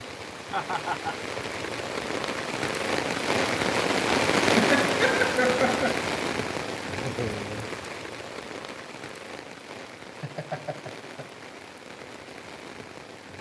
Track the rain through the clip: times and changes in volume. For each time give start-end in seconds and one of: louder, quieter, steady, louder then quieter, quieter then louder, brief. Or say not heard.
0.0-13.3 louder then quieter.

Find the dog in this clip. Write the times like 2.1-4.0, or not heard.
not heard.